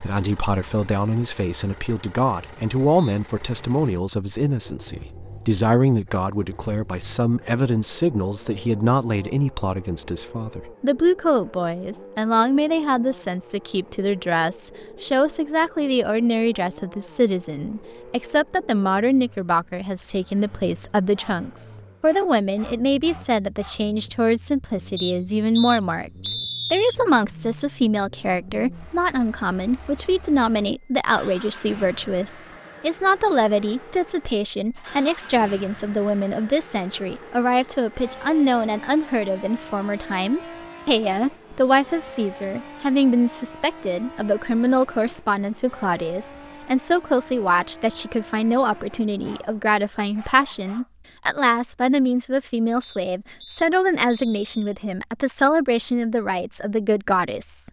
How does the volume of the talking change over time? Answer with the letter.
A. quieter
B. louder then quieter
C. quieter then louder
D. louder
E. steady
E.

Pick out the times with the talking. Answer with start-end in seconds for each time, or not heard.
0.0-57.6.